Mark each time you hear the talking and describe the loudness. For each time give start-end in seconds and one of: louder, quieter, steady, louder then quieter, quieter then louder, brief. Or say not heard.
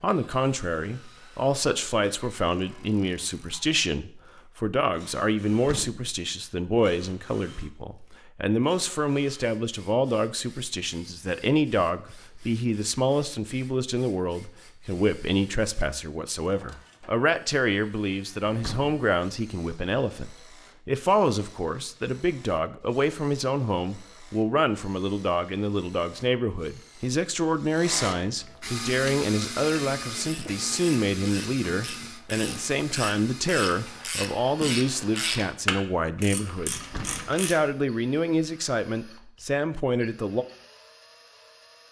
0.0-40.5 steady.